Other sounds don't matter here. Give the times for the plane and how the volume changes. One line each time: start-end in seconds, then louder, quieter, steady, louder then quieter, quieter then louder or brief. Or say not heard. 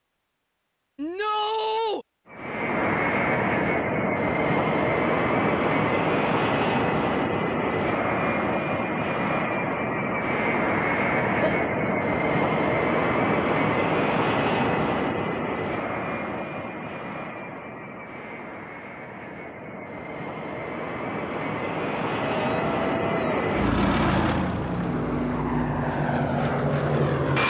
2.3-27.4 quieter then louder.